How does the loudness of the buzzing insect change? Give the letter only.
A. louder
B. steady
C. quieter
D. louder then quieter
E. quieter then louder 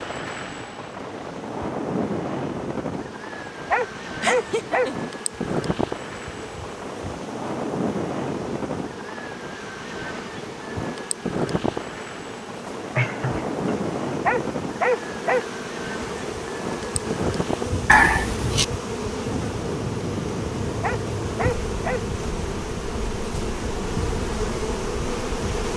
A.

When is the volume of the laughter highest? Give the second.
18 s.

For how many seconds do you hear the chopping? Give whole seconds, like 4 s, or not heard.
not heard.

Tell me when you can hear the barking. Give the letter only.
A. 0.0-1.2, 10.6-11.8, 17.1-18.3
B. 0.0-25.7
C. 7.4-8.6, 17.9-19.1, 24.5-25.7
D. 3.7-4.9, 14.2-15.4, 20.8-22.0
D.